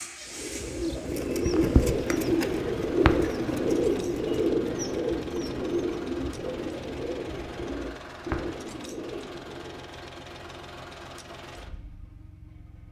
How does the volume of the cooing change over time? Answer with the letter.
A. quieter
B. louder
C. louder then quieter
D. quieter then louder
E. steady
A.